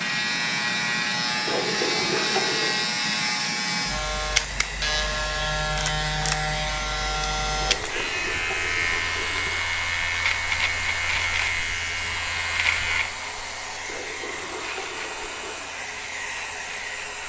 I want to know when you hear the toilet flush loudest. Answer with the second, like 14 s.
2 s.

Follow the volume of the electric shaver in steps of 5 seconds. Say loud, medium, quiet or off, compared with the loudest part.
loud, loud, loud, quiet.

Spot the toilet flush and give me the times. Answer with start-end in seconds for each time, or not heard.
1.4-2.9, 7.6-9.6, 13.8-15.7.